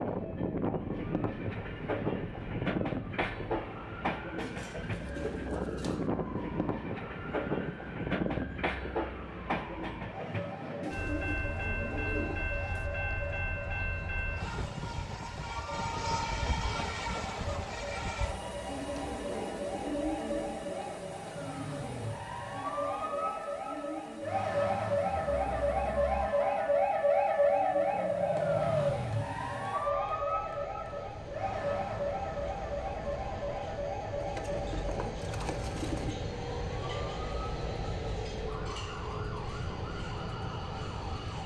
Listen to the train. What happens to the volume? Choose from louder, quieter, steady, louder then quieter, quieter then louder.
quieter then louder.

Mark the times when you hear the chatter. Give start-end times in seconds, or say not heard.
not heard.